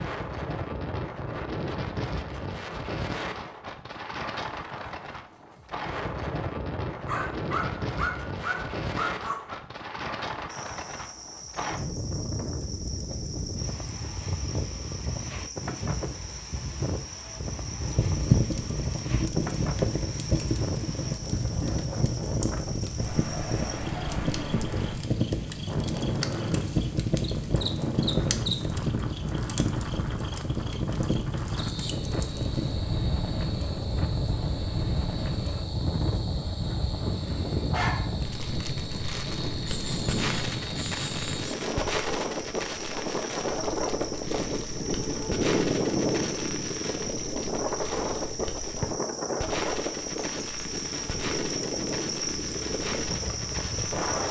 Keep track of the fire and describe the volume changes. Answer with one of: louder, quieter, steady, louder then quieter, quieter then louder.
quieter.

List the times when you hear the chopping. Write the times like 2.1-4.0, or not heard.
not heard.